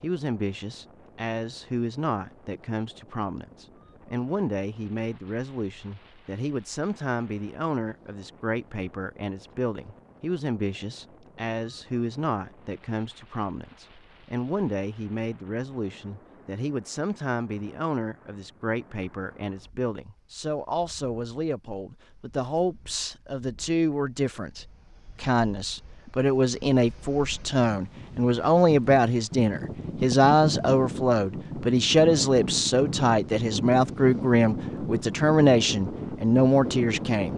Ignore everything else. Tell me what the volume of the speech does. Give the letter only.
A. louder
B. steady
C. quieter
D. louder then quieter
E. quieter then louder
A.